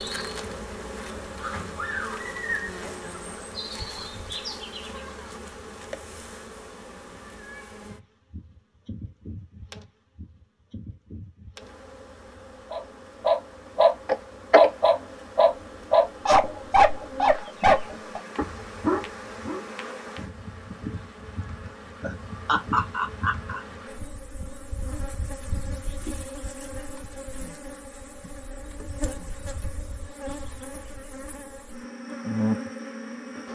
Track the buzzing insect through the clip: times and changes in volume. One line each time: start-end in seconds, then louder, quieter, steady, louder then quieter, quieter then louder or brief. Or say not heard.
0.0-33.5 quieter then louder.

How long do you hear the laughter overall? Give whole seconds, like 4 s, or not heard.
2 s.